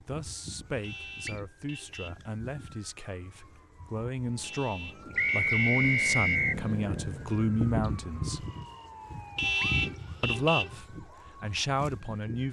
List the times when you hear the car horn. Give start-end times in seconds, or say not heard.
0.8-2.2, 4.4-5.8, 9.3-10.8.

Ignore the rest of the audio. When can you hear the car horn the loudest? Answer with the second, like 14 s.
10 s.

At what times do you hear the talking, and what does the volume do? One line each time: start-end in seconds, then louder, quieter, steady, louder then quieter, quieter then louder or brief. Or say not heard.
0.0-8.4 louder
10.2-12.4 brief.